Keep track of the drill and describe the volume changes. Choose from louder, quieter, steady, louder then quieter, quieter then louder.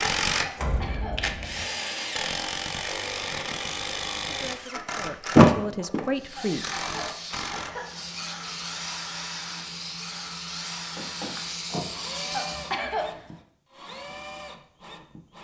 quieter.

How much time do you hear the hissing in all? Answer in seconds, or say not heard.
7 s.